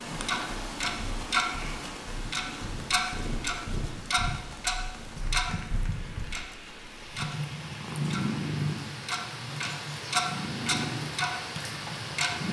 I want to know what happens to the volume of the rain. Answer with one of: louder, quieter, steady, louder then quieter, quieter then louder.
quieter then louder.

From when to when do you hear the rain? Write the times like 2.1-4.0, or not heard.
0.0-12.4.